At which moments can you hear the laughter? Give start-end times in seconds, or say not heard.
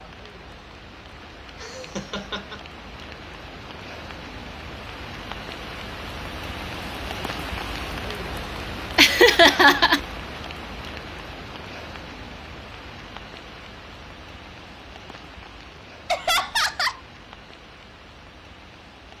1.6-2.6, 8.9-10.0, 16.1-17.0.